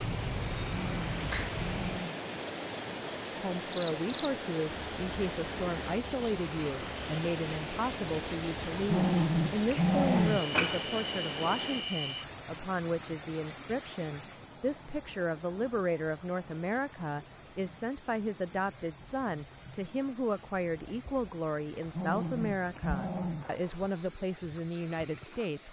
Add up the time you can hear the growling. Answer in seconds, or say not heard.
5 s.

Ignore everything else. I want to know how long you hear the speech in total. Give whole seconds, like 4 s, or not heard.
22 s.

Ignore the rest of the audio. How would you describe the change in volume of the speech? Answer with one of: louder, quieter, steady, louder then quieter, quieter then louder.
steady.